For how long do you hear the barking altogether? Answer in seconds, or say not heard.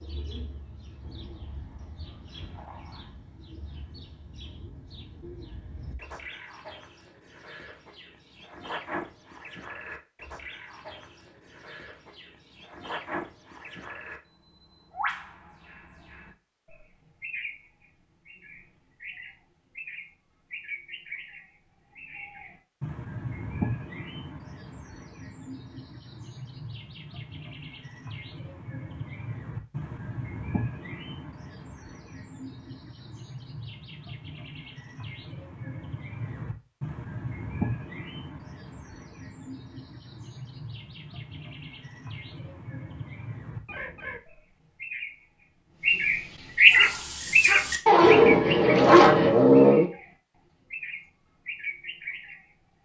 3 s.